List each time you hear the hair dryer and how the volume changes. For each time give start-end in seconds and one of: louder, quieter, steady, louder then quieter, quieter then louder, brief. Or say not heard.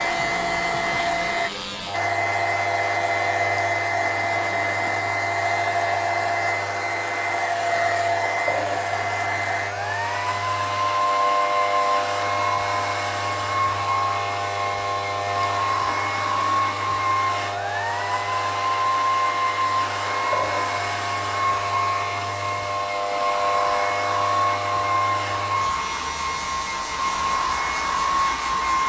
0.0-28.8 steady.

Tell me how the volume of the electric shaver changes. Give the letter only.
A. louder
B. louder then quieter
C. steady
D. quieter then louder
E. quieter
C.